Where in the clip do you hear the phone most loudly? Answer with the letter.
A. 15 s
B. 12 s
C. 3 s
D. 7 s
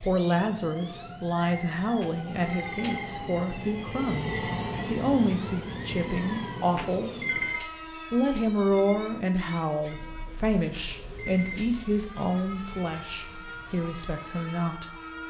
D.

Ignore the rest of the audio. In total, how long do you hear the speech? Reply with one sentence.
The speech can be heard for 14 seconds in total.